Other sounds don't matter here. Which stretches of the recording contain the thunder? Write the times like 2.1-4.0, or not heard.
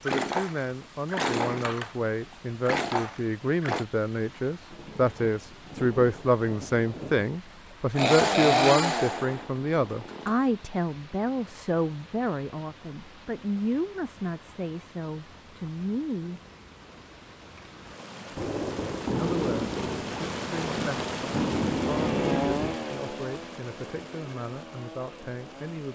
4.7-7.3, 18.4-22.8.